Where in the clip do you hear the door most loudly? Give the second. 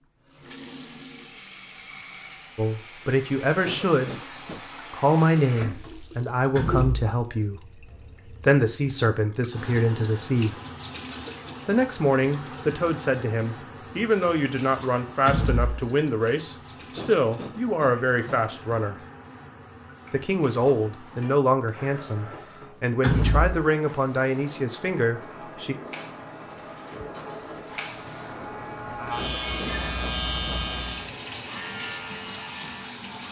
23 s.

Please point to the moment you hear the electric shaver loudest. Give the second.
30 s.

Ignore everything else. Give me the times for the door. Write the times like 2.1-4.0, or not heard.
6.5-7.0, 15.2-15.8, 23.0-23.6.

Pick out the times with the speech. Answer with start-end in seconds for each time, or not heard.
2.5-4.2, 4.9-10.6, 11.7-18.9, 20.1-25.8.